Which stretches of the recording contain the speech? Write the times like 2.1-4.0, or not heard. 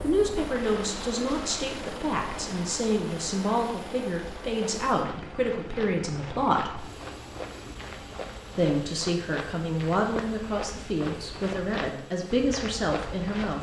0.0-6.8, 8.6-13.5.